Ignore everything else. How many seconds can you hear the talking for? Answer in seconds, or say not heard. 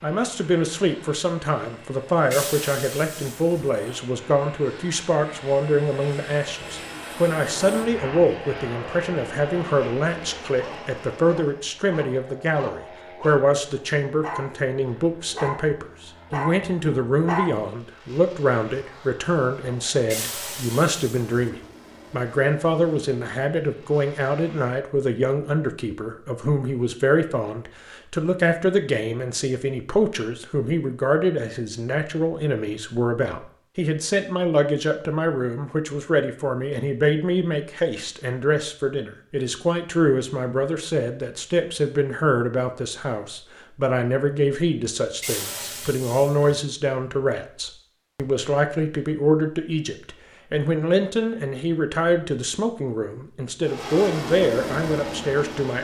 56 s.